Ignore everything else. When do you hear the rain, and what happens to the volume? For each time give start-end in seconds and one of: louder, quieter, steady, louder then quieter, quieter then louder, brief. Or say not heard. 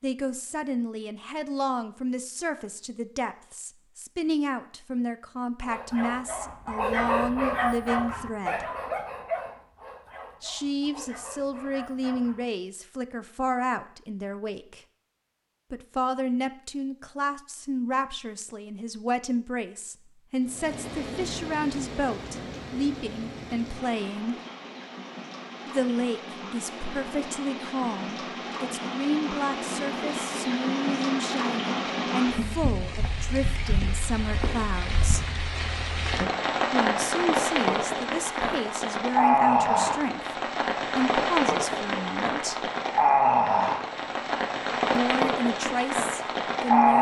20.4-46.9 louder.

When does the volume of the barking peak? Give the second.
7 s.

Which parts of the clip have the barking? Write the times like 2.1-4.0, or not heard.
5.6-12.4.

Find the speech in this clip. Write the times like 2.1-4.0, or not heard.
0.0-8.7, 10.4-14.8, 15.7-24.4, 25.6-35.4, 36.7-42.7, 45.0-46.9.